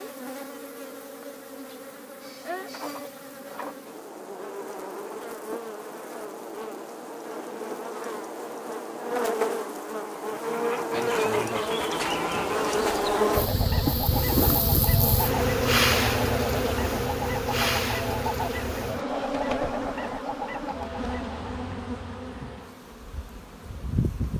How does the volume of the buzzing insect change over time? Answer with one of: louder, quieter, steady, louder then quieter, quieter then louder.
louder then quieter.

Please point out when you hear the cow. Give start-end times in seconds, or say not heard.
not heard.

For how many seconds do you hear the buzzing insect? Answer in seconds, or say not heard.
24 s.